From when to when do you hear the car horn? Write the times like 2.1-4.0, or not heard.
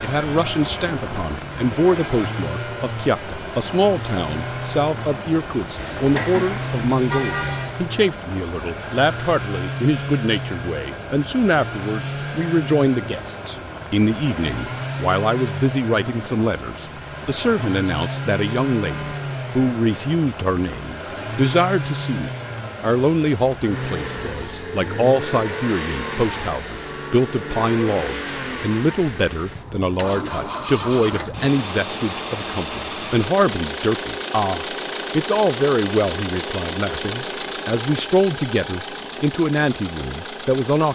5.8-7.8.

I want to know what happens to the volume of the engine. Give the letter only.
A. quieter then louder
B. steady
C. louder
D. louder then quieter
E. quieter
B.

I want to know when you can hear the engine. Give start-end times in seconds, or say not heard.
0.0-40.9.